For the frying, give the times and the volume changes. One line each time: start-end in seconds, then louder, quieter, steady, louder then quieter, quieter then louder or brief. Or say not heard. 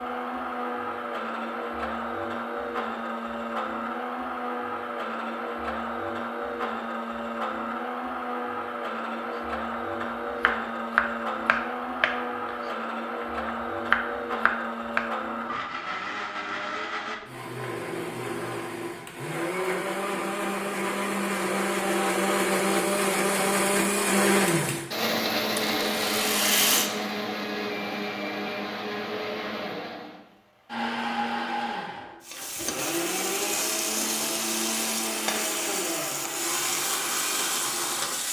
32.2-38.2 steady.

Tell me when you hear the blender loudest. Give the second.
24 s.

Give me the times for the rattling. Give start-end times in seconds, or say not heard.
25.8-26.9.